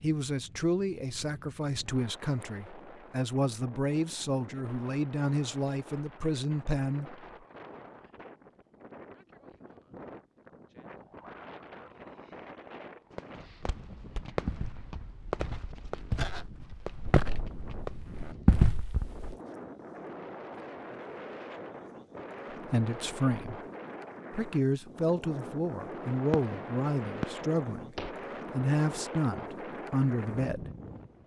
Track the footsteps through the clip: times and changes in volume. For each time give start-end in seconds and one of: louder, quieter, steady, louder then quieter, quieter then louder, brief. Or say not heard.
13.7-19.4 quieter then louder.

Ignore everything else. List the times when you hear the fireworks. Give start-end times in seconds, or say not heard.
13.1-18.1, 26.3-28.1.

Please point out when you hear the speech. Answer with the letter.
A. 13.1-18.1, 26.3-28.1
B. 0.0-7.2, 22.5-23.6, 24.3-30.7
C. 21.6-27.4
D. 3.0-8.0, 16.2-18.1
B.